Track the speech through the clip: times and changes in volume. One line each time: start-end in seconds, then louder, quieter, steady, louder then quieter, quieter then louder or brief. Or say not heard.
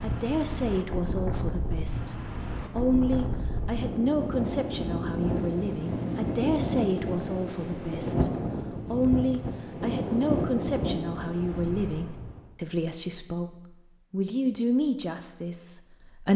0.0-16.3 steady.